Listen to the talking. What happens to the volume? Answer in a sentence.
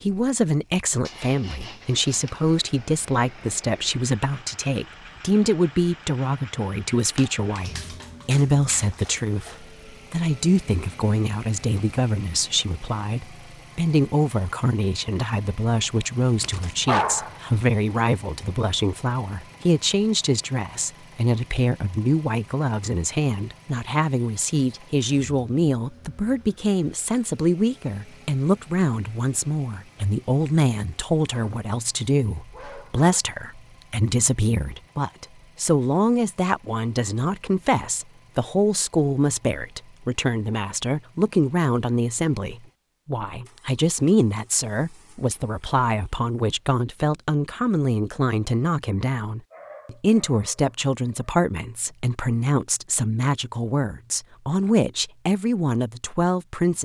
The loudness of the talking stays about the same.